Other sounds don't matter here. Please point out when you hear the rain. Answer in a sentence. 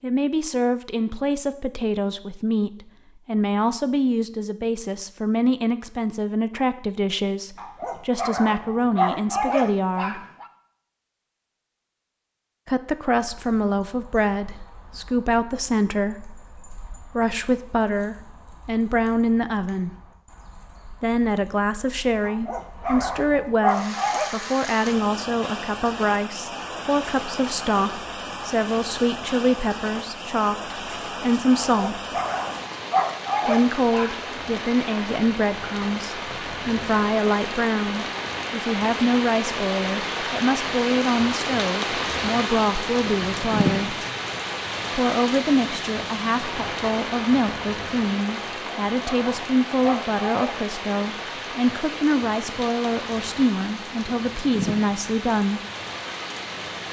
You can hear the rain from 23.6 to 56.8 s.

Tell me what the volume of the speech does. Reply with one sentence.
The loudness of the speech stays about the same.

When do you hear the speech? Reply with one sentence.
You can hear the speech from 0.0 to 10.2 s, from 12.7 to 19.9 s, from 21.0 to 32.0 s, from 33.5 to 44.0 s and from 44.9 to 55.6 s.